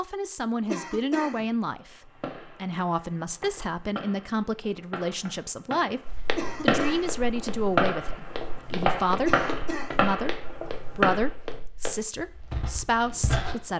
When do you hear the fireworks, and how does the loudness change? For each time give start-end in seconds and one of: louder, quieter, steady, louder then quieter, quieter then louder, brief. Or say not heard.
1.8-11.2 louder.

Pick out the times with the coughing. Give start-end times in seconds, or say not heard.
0.7-1.4, 6.3-7.1, 9.2-10.0.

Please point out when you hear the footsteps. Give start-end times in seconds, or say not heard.
6.0-13.6.